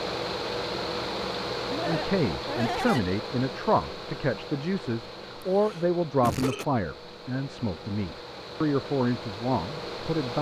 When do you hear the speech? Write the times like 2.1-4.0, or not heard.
1.9-10.3.